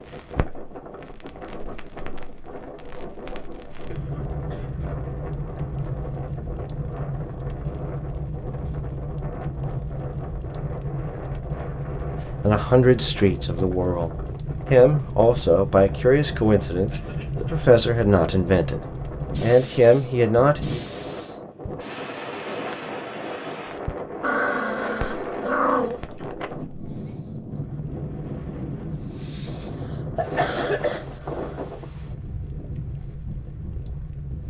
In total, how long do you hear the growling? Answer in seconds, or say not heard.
2 s.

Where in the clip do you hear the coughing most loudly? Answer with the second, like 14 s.
31 s.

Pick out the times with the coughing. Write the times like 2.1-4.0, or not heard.
3.9-4.8, 16.9-17.6, 29.4-31.6.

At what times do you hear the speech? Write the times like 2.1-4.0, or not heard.
12.4-20.8.